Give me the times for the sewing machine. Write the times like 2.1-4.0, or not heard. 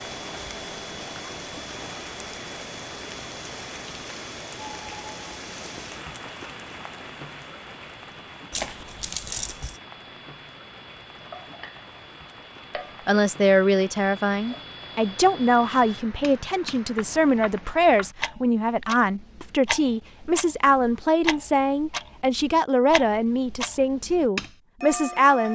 not heard.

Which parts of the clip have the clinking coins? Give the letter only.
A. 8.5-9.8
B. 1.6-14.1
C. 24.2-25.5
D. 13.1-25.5
A.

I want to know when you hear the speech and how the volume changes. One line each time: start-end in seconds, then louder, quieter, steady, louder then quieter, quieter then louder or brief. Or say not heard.
13.1-25.5 steady.